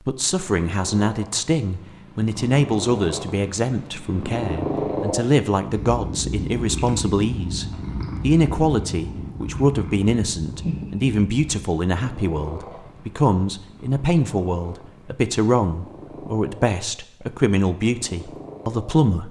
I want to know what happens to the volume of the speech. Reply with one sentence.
The volume of the speech stays about the same.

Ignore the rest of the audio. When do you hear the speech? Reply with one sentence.
You can hear the speech from 0.1 to 19.2 s.